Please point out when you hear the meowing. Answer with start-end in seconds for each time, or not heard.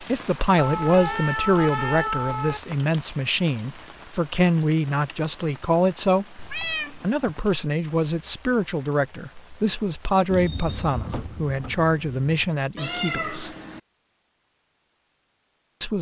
0.6-2.6, 6.3-7.2, 12.8-13.8.